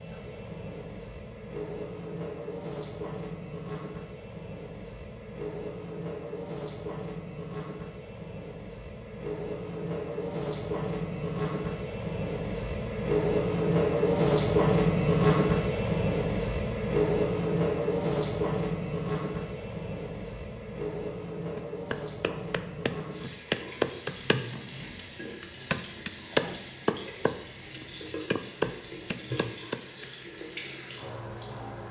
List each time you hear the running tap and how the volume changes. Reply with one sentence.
You can hear the running tap from 0.0 to 31.8 s, getting louder then quieter.